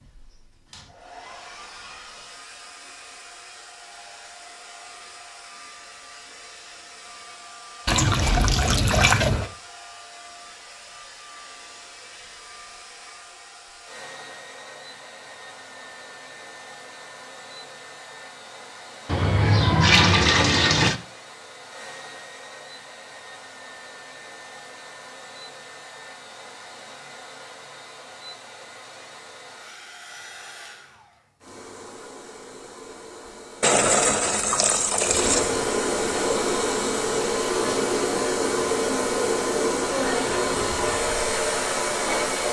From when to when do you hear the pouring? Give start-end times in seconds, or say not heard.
7.8-9.5, 19.1-21.0, 33.6-35.6.